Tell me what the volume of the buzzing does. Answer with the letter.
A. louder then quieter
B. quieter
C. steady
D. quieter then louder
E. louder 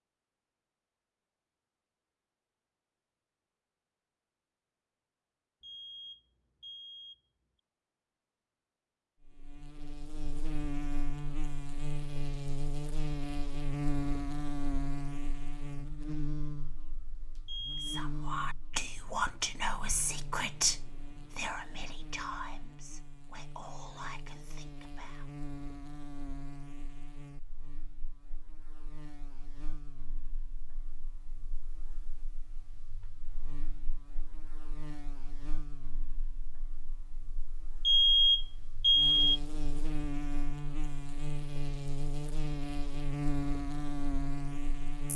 D.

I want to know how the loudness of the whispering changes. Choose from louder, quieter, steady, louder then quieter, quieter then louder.
quieter.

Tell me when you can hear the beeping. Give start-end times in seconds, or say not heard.
5.6-7.2, 17.4-18.1, 37.9-39.4.